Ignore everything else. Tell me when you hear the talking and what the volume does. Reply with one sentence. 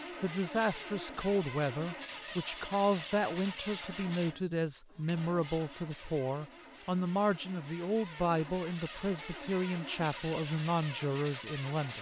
You can hear the talking from 0.0 to 11.9 s, at a steady volume.